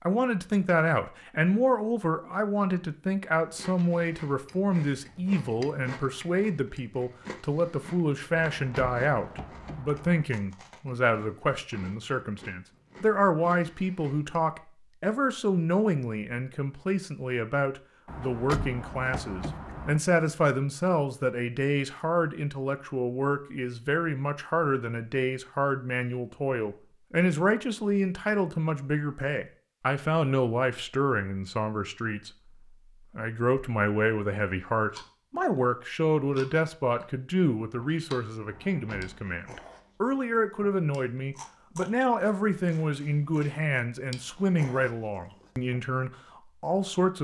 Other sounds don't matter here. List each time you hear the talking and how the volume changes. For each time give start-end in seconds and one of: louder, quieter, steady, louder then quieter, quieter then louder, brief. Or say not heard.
0.0-32.3 steady
33.1-47.2 steady.